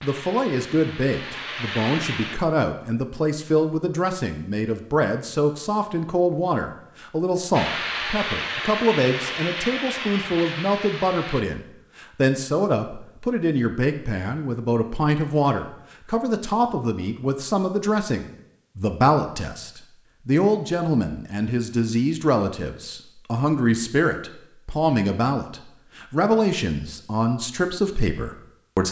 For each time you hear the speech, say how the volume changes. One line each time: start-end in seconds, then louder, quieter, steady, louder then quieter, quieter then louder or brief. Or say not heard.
0.0-28.8 steady.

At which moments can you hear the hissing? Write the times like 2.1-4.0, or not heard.
0.0-2.4, 7.5-11.4.